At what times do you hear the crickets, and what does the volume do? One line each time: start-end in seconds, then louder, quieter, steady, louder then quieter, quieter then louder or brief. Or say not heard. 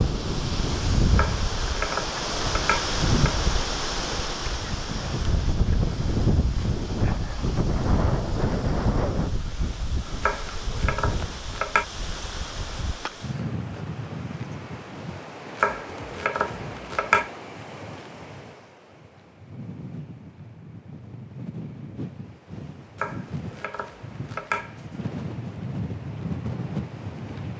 not heard.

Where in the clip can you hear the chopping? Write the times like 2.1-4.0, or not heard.
1.1-3.5, 10.2-11.8, 15.6-17.3, 22.9-25.0.